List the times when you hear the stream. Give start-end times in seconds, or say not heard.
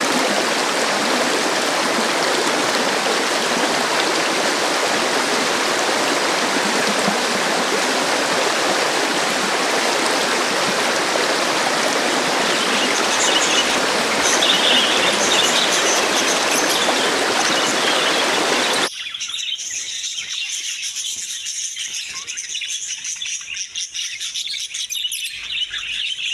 0.0-18.9.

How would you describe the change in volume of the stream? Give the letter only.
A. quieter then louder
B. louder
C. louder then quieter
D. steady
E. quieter
D.